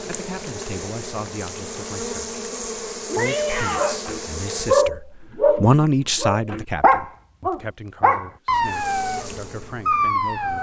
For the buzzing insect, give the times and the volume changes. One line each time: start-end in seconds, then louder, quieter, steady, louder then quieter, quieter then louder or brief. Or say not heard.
0.0-4.9 steady
8.6-10.5 brief.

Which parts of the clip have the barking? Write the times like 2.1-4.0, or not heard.
3.8-10.5.